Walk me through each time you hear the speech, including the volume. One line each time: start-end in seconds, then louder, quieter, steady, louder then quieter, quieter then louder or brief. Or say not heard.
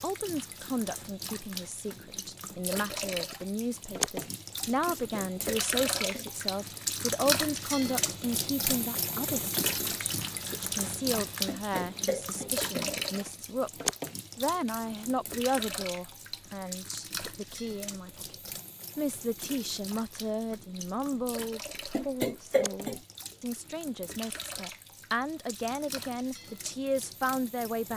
0.0-27.9 steady.